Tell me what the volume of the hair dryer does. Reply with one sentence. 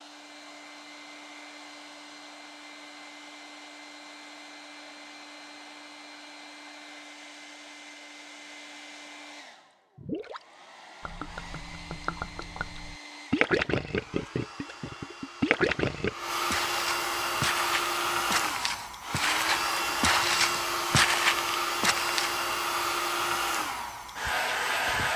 The volume of the hair dryer goes up.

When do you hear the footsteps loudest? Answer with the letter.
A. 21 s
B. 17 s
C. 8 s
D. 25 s
A.